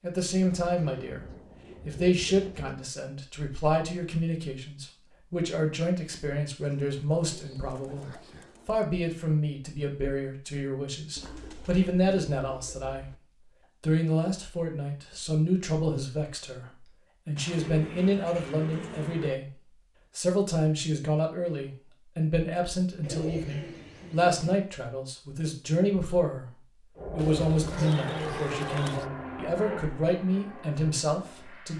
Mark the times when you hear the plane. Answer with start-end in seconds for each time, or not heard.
26.9-31.7.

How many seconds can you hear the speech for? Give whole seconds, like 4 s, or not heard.
29 s.